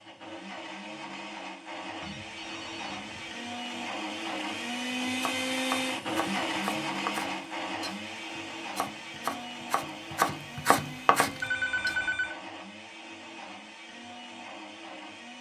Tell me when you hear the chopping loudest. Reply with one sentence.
The loudest moment of the chopping is at 10 seconds.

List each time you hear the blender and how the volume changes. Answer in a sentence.
You can hear the blender from 0.0 to 15.3 s, getting louder then quieter.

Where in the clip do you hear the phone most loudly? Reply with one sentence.
The volume of the phone peaks at 12 seconds.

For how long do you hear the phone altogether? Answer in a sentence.
You can hear the phone for 2 seconds altogether.